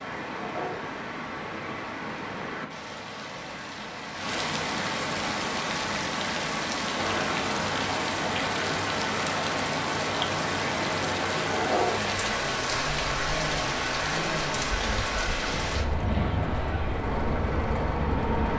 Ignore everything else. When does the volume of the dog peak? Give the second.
12 s.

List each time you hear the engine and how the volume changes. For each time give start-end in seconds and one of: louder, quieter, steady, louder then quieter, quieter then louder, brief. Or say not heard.
7.0-18.5 steady.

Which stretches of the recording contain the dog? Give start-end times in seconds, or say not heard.
0.3-0.9, 11.5-12.2.